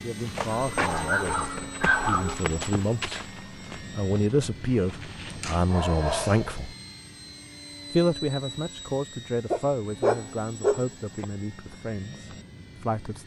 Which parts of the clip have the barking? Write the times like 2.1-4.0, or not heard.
0.5-2.5, 5.3-6.5, 9.5-11.2.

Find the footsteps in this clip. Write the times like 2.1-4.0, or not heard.
0.2-5.6.